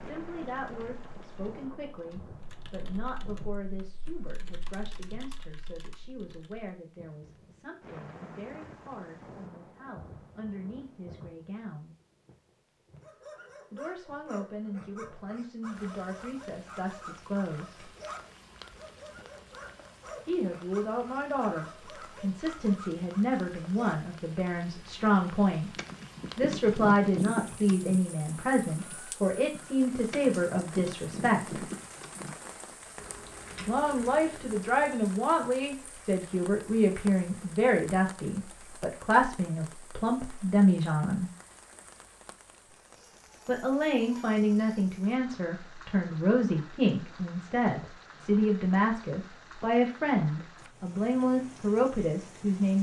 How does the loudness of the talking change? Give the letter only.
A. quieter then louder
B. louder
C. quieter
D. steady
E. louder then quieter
B.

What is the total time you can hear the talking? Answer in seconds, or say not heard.
44 s.